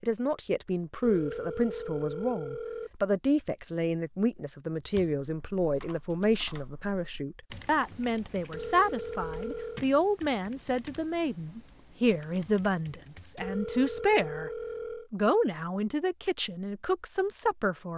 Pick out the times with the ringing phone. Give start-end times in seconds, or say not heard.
1.0-3.0, 8.5-9.8, 13.4-15.1.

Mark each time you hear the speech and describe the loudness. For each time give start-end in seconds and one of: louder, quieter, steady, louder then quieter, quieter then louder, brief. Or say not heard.
0.0-14.5 steady
15.1-17.9 brief.